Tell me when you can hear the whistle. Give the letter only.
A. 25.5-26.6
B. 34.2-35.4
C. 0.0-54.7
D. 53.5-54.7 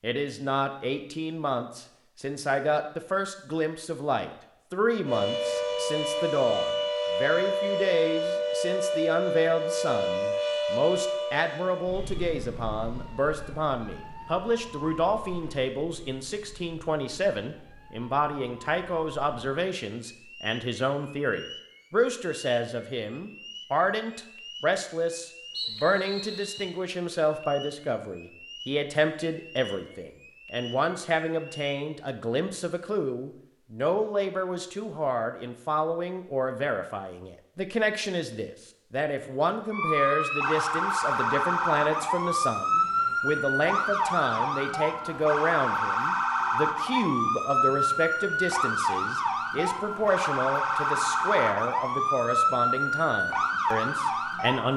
A.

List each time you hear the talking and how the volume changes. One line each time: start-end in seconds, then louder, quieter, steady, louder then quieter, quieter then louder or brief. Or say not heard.
0.0-54.7 steady.